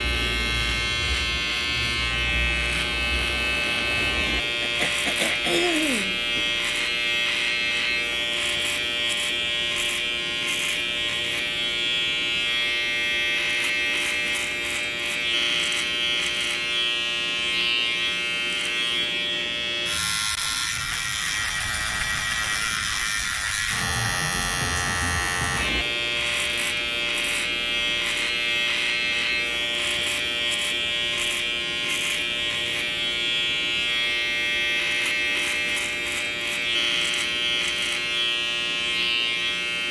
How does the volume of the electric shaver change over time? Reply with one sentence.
The volume of the electric shaver stays about the same.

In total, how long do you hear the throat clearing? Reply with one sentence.
The throat clearing can be heard for 2 seconds in total.